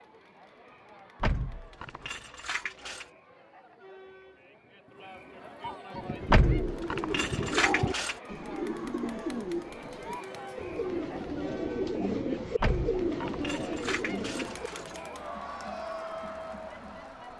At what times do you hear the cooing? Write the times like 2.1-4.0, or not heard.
5.7-14.8.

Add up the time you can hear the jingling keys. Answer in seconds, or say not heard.
6 s.